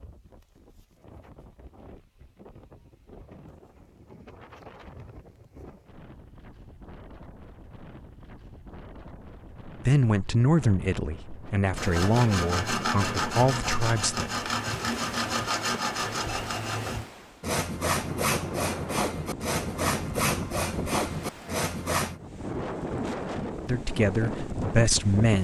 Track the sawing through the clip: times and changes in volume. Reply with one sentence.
The sawing can be heard from 11.8 to 22.2 s, at a steady volume.